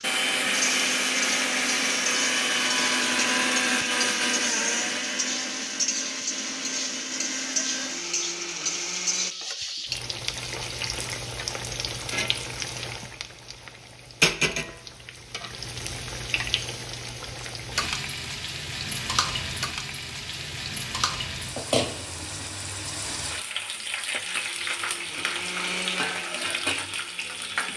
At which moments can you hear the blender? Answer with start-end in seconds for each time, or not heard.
0.0-9.3, 24.2-27.7.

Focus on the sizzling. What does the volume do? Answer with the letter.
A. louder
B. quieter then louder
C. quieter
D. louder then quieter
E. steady
E.